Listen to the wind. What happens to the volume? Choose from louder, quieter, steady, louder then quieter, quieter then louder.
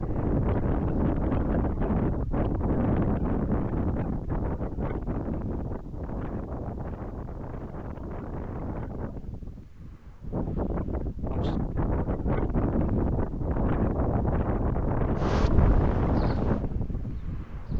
quieter then louder.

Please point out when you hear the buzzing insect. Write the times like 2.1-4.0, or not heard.
15.2-17.7.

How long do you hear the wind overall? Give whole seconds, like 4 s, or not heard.
18 s.